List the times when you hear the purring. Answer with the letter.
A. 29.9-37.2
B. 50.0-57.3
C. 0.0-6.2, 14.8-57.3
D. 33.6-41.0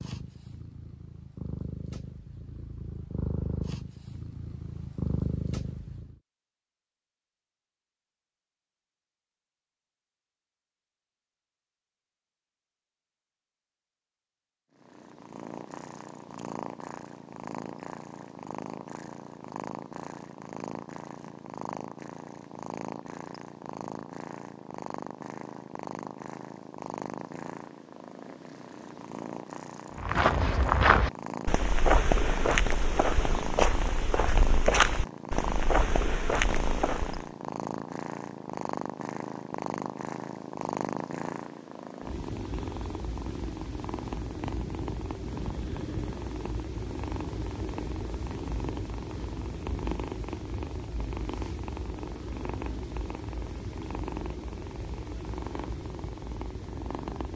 C.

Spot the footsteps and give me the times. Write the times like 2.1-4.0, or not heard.
29.9-37.2.